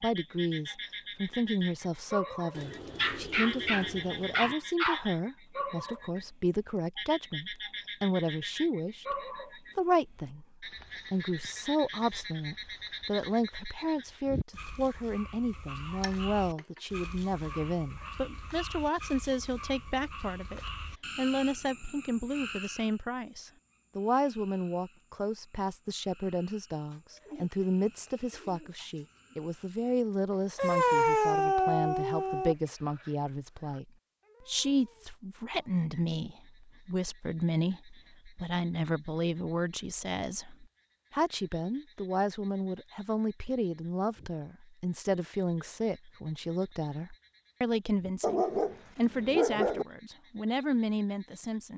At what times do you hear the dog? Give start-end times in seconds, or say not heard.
3.0-5.0, 15.9-16.8, 17.4-18.1, 30.6-32.5, 48.2-49.9.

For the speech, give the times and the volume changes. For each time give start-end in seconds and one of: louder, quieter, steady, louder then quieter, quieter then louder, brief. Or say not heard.
0.0-51.7 steady.